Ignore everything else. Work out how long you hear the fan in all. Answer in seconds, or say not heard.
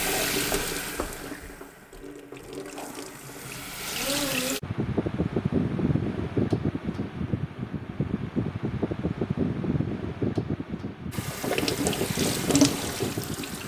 9 s.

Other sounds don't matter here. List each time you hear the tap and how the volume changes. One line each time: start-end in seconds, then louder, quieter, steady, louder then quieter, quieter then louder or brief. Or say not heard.
0.0-4.6 quieter then louder
11.1-13.6 brief.